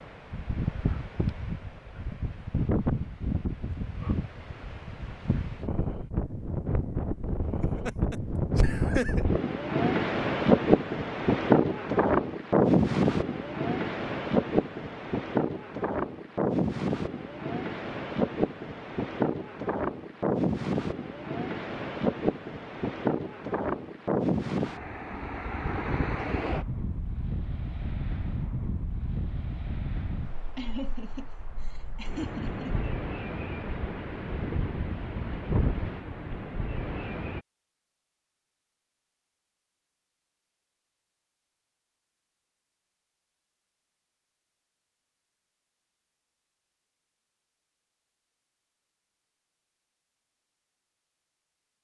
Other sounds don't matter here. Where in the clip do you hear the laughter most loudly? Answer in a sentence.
The volume of the laughter peaks at 9 seconds.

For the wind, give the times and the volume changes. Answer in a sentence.
You can hear the wind from 0.0 to 37.4 s, getting louder then quieter.